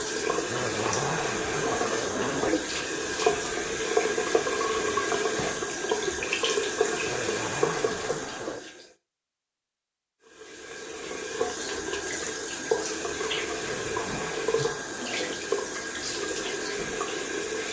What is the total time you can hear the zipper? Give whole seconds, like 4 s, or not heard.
5 s.